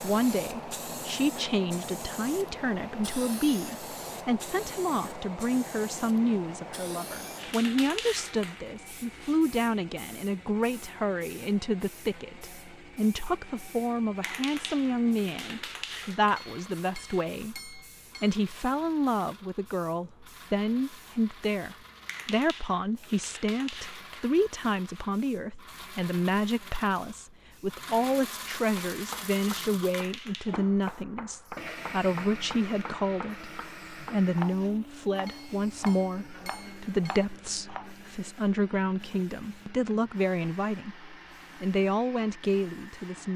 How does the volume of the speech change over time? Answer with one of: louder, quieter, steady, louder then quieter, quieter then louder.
steady.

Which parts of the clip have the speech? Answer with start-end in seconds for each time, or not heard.
0.0-43.3.